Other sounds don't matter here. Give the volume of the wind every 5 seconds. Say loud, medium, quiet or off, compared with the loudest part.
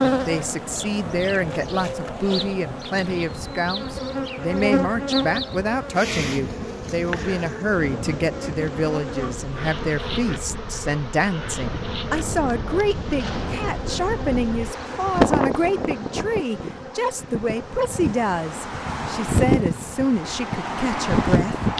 quiet, quiet, medium, loud, loud.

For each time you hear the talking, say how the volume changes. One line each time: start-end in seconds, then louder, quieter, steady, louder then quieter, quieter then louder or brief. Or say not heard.
0.0-21.6 steady.